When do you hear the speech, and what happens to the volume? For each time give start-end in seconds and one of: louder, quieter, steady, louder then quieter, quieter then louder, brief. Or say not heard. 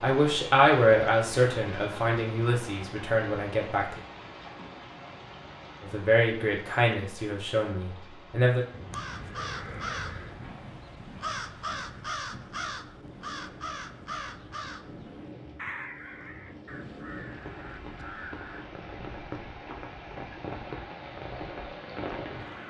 0.0-4.0 quieter
5.8-8.7 brief.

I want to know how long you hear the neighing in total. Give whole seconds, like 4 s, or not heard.
2 s.